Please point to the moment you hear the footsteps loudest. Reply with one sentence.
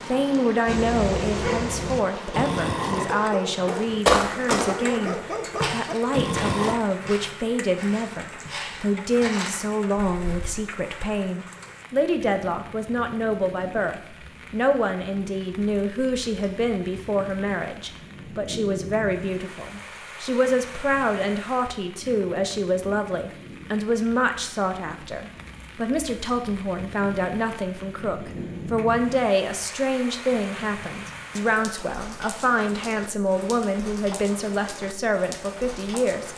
The loudest moment of the footsteps is at 4 seconds.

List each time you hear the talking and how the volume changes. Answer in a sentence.
You can hear the talking from 0.0 to 36.3 s, at a steady volume.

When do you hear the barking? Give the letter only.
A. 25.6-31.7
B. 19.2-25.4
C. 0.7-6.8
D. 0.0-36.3
C.